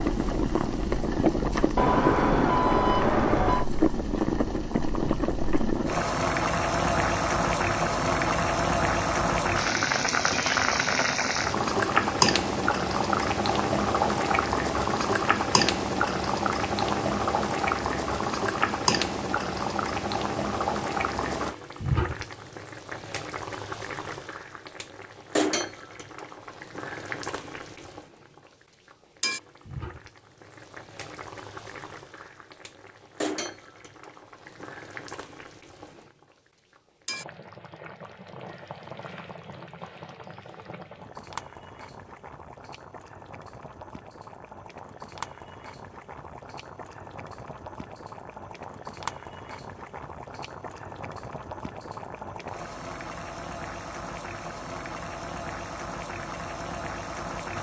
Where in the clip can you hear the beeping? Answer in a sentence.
The beeping can be heard from 1.8 to 3.6 s.